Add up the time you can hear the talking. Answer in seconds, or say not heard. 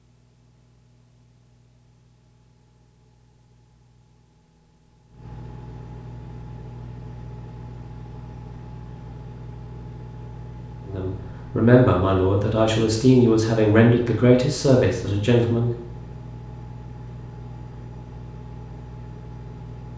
5 s.